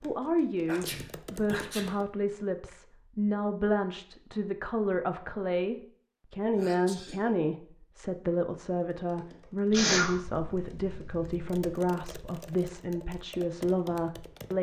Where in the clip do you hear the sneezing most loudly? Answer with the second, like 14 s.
10 s.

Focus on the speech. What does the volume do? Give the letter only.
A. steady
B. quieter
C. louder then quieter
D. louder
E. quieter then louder
A.